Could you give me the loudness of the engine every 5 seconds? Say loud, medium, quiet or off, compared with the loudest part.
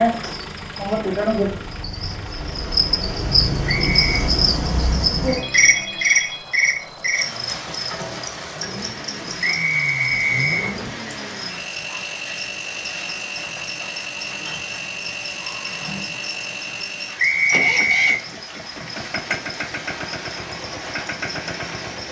medium, medium, loud, loud, loud.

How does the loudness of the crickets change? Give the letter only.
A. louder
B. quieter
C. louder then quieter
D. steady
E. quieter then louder
B.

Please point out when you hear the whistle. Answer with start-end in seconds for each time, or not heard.
3.6-4.3, 9.4-10.8, 17.1-18.2.